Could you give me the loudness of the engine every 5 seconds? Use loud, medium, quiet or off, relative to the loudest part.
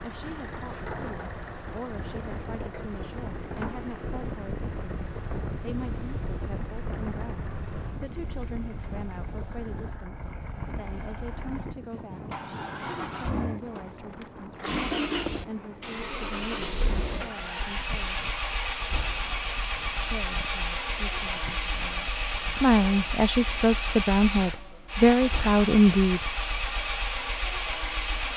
medium, quiet, medium, loud, loud, loud.